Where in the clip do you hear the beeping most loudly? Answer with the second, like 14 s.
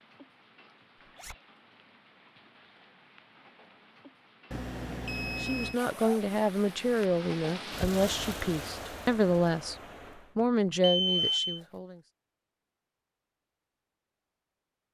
11 s.